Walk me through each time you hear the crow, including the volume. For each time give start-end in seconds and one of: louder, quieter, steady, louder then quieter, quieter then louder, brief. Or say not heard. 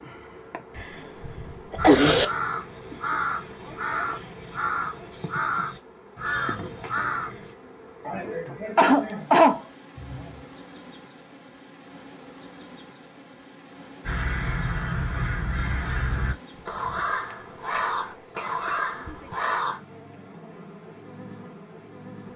1.8-7.5 steady
14.0-19.8 steady.